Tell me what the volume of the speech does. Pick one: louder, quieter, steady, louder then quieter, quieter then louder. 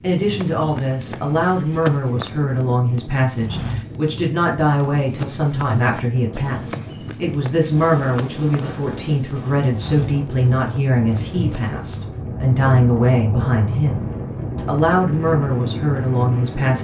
steady.